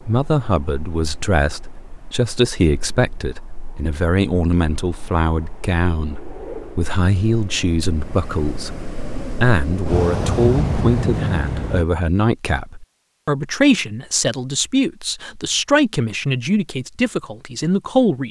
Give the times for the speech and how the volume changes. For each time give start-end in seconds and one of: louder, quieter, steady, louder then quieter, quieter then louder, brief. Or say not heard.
0.0-18.2 steady.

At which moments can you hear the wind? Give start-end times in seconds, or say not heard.
0.0-11.8.